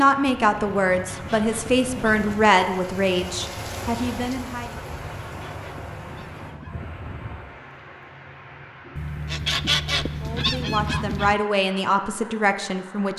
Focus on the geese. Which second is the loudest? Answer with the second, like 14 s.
10 s.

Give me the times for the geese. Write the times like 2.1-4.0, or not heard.
0.8-2.5, 4.7-7.0, 8.9-11.3.